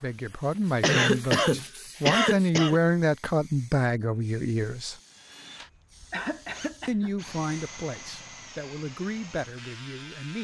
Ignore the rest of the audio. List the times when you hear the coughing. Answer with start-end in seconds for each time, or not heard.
0.8-2.8, 6.1-7.1.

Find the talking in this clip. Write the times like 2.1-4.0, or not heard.
0.0-5.0, 6.8-10.3.